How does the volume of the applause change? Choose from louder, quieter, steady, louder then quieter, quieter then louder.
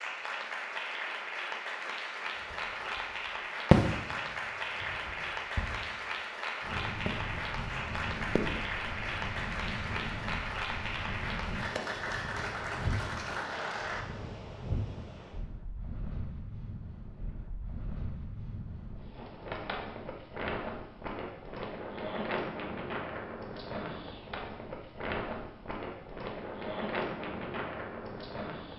steady.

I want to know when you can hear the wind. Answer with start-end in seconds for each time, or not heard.
6.6-28.7.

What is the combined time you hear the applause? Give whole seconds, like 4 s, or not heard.
14 s.